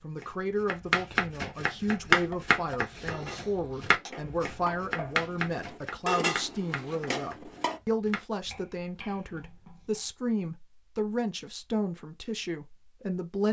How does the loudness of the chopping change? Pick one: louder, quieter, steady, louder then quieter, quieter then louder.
quieter.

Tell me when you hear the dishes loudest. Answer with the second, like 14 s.
6 s.